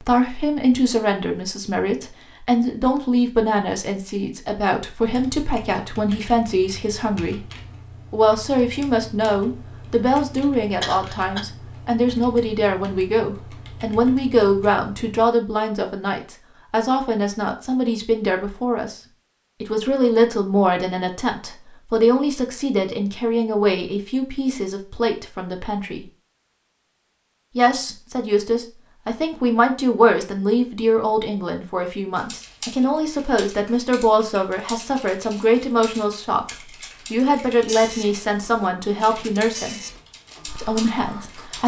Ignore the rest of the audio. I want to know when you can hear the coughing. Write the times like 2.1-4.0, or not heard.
10.3-11.4.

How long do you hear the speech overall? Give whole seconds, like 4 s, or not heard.
38 s.